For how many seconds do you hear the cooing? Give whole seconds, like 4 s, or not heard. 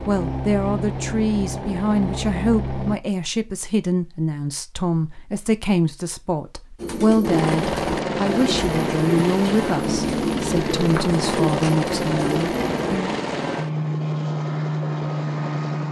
6 s.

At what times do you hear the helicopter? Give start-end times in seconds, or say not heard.
0.0-3.0, 7.2-15.8.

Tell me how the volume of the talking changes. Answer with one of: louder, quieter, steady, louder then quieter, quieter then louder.
steady.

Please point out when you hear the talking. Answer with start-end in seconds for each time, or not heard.
0.1-13.2.